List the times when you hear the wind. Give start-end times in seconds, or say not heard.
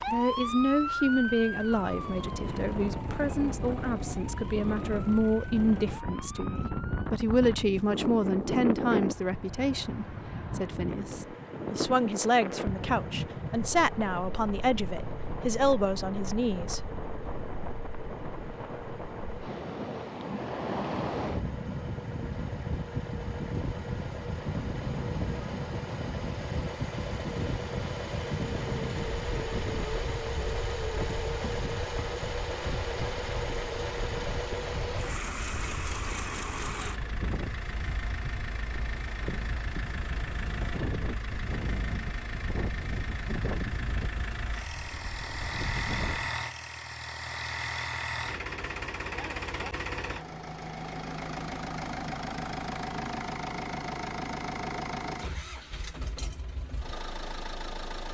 0.0-46.3.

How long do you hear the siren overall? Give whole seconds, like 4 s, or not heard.
7 s.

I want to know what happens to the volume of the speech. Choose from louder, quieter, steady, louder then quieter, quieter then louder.
steady.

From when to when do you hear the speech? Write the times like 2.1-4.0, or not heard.
0.1-16.8.